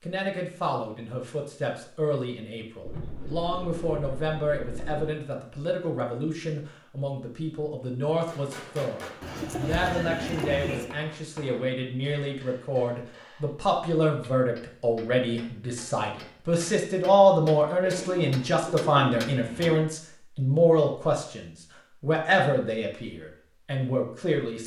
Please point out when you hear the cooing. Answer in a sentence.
You can hear the cooing from 2.9 to 5.1 s, from 9.2 to 10.9 s and from 17.8 to 19.9 s.